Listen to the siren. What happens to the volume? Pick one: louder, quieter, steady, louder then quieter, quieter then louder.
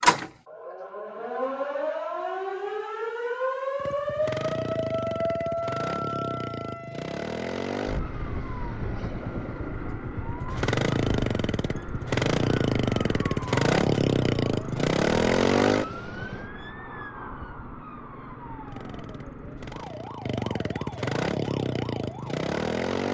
quieter.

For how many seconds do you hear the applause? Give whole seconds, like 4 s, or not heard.
not heard.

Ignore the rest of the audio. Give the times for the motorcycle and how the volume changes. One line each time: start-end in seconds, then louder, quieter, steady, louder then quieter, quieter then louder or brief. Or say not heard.
3.8-16.4 louder
18.6-23.0 louder.